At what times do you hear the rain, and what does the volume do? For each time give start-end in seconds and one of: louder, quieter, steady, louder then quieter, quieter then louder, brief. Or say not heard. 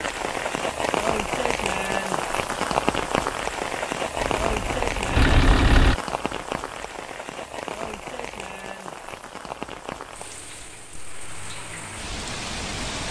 0.0-13.0 quieter.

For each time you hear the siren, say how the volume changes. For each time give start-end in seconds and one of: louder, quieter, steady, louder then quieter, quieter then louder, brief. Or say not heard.
not heard.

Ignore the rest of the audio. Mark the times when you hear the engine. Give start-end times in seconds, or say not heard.
4.2-6.0.